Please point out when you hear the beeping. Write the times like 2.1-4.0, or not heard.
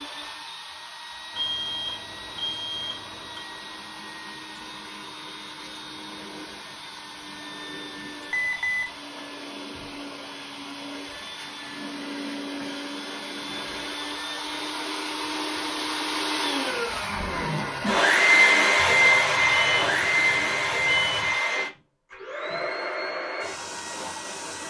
1.4-3.5, 8.3-8.8, 18.8-21.4.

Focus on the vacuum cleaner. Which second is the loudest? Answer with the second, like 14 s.
19 s.